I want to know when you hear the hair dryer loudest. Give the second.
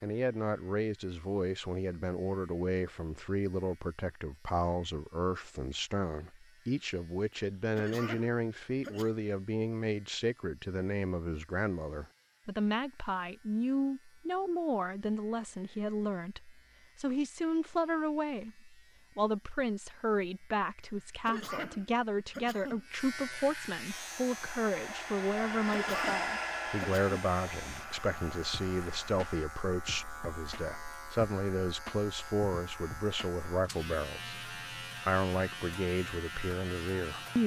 26 s.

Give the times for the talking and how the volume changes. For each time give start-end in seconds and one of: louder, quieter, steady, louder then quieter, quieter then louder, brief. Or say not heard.
0.0-37.4 steady.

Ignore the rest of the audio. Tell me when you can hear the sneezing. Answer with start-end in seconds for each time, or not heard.
7.8-9.2, 21.2-22.9, 25.7-27.1.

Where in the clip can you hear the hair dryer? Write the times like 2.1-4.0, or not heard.
23.9-29.5.